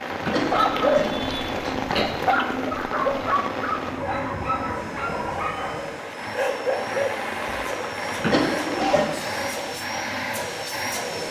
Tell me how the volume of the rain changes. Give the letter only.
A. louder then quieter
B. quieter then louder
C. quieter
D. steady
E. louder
B.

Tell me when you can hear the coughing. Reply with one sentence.
You can hear the coughing from 0.2 to 2.0 s and from 8.2 to 9.1 s.